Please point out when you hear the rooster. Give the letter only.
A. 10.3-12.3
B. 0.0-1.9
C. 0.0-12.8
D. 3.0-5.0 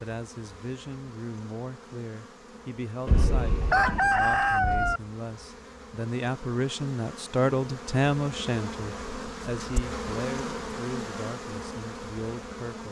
D.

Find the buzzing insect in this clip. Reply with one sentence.
You can hear the buzzing insect from 0.0 to 12.8 s.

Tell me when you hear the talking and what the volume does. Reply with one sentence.
You can hear the talking from 0.0 to 12.8 s, getting louder then quieter.